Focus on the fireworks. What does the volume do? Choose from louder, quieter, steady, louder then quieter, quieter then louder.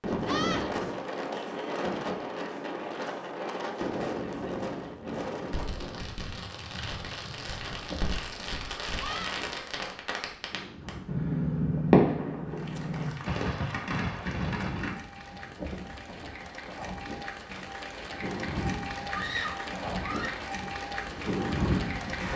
louder then quieter.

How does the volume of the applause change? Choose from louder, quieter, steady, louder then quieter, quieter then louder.
louder.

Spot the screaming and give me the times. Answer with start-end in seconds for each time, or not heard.
0.2-0.7, 8.9-9.4, 19.1-20.4.